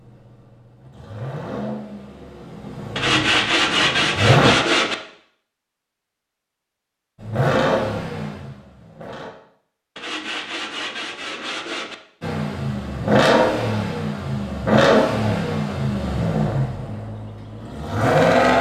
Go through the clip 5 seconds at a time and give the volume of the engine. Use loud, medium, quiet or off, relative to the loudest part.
medium, medium, loud, loud.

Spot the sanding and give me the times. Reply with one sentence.
The sanding can be heard from 3.0 to 5.0 s and from 9.9 to 11.9 s.